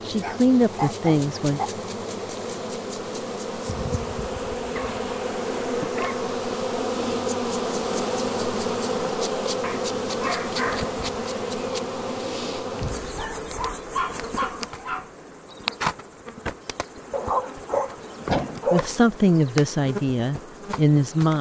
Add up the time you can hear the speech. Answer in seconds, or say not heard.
4 s.